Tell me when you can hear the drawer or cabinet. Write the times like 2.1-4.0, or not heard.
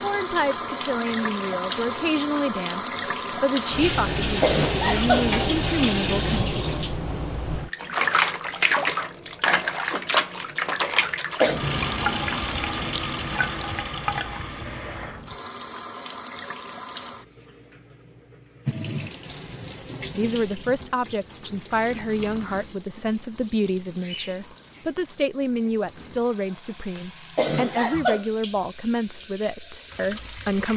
not heard.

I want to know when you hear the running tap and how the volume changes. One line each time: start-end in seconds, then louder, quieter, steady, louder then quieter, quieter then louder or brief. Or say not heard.
0.0-30.7 quieter.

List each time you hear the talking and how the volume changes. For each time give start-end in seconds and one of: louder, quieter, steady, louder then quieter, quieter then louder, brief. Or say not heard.
0.0-6.8 steady
20.1-30.7 steady.